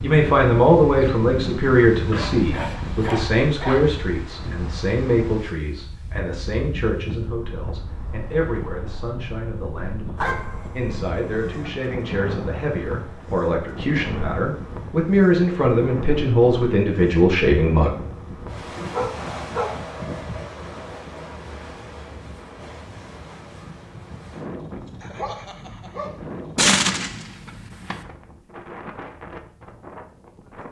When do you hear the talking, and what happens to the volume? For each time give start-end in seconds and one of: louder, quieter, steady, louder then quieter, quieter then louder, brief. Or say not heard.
0.0-17.9 quieter then louder.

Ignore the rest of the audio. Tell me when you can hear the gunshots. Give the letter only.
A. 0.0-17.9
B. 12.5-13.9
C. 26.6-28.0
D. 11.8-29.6
C.